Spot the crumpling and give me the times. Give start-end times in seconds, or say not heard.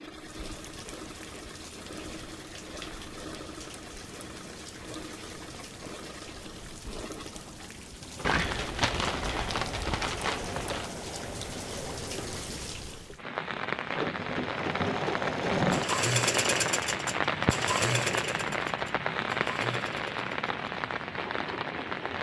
8.2-10.9.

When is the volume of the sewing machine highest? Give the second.
16 s.